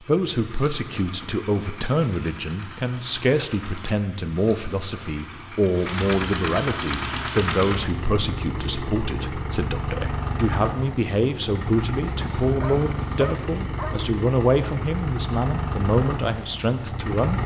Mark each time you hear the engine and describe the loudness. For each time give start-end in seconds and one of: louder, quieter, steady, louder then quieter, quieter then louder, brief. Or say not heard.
0.0-17.4 louder.